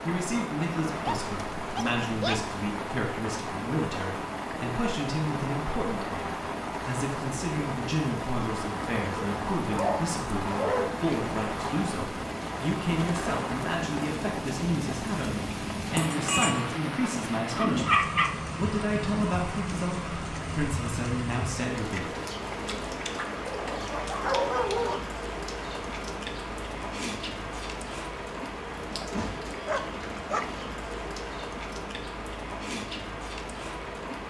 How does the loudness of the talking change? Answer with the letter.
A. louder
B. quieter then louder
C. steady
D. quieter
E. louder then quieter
C.